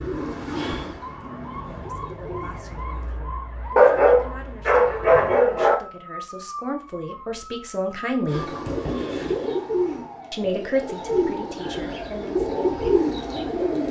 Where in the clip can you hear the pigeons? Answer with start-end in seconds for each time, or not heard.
0.0-3.1, 8.2-13.8.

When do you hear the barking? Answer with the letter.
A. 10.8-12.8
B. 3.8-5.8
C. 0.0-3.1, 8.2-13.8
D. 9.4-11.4
B.